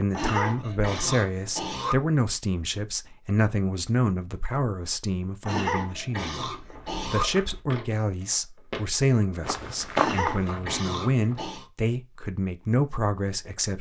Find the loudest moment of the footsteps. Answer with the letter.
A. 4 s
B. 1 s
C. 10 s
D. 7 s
C.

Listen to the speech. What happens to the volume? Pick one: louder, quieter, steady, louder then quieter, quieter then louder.
steady.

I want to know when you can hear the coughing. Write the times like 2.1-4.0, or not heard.
0.1-1.9, 5.5-7.2, 9.9-11.7.